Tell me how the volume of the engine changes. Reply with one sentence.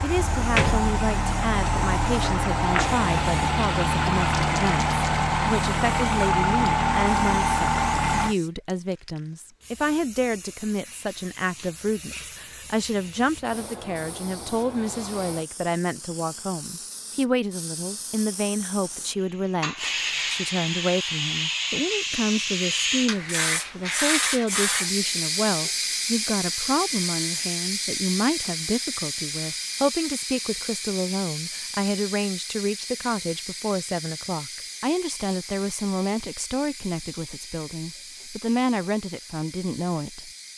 The volume of the engine stays about the same.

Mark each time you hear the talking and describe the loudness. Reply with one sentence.
The talking can be heard from 0.0 to 40.3 s, at a steady volume.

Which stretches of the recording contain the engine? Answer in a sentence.
You can hear the engine from 0.0 to 8.3 s.